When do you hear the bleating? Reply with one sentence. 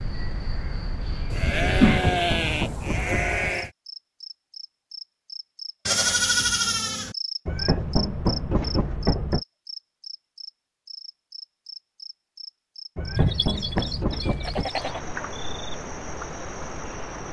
The bleating can be heard from 1.3 to 3.7 s, from 5.8 to 7.2 s and from 13.2 to 15.0 s.